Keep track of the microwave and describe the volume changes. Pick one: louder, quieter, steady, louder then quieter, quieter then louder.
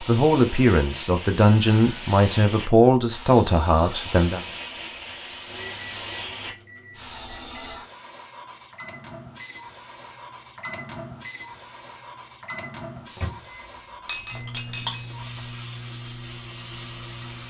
louder.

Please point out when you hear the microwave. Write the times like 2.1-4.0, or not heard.
5.5-17.4.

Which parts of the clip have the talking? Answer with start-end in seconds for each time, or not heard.
0.0-4.4.